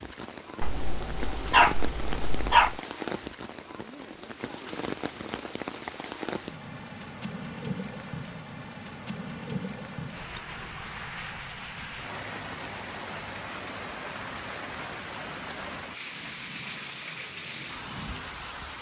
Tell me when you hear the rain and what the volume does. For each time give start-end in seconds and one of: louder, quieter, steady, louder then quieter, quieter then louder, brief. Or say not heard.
0.0-18.7 steady.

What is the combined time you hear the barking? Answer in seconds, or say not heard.
2 s.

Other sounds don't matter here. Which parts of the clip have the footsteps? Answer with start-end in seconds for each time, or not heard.
not heard.